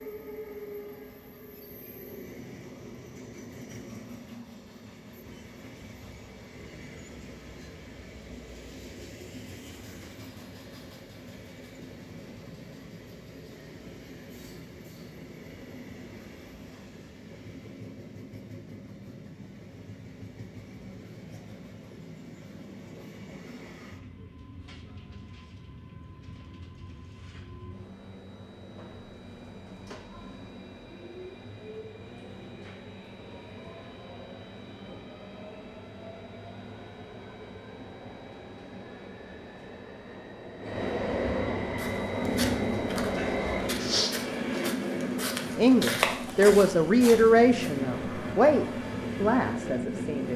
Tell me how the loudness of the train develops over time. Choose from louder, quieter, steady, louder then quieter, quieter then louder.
louder.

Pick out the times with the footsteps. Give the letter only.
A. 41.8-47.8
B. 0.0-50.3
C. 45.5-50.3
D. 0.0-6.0
A.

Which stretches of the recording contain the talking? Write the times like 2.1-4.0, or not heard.
45.5-50.3.